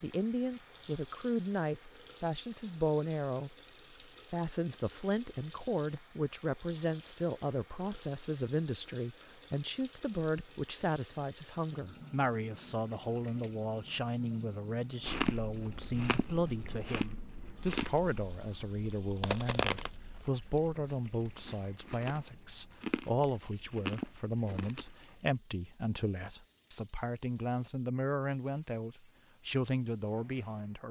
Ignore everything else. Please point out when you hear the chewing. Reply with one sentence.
The chewing can be heard from 15.0 to 24.9 s.